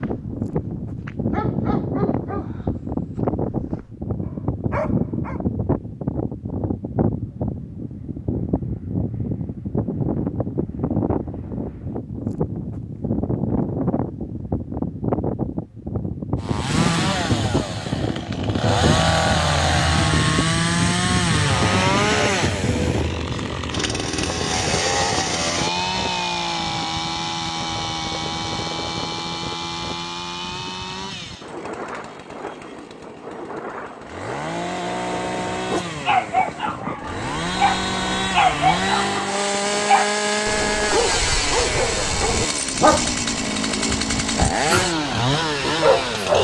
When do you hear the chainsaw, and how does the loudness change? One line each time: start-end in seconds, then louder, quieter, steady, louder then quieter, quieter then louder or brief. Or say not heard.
16.4-46.3 quieter then louder.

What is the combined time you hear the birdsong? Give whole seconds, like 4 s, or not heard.
not heard.